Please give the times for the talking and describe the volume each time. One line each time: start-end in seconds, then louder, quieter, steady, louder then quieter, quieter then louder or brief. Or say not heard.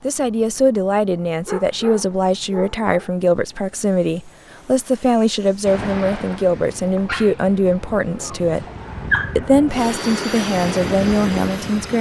0.0-8.7 steady
9.3-11.9 brief.